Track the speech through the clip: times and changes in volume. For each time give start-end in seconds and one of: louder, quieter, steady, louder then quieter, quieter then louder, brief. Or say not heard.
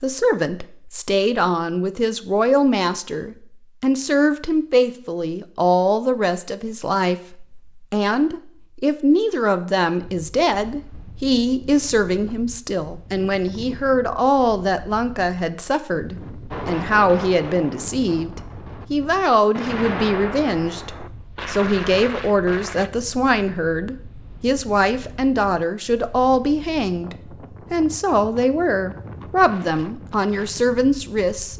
0.0-31.5 steady.